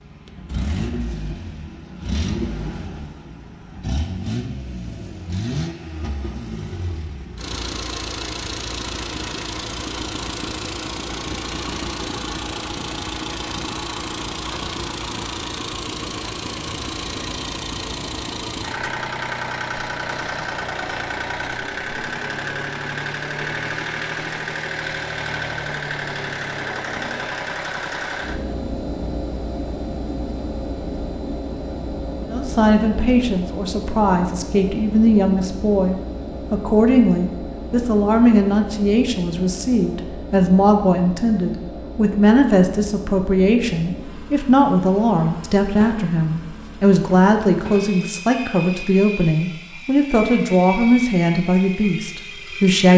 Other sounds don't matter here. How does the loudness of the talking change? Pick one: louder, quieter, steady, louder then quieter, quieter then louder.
steady.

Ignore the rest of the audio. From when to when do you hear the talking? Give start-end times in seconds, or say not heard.
32.3-52.9.